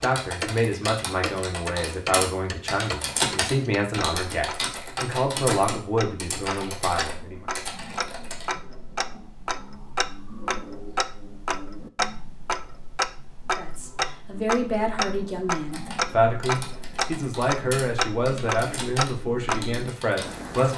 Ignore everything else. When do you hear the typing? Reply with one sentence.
The typing can be heard from 0.0 to 8.5 s and from 15.7 to 20.7 s.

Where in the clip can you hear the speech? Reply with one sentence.
The speech can be heard from 0.0 to 7.5 s and from 13.6 to 20.7 s.